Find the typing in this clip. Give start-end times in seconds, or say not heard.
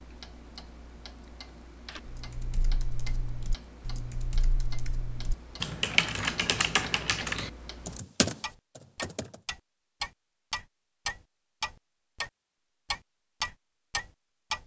1.9-9.4.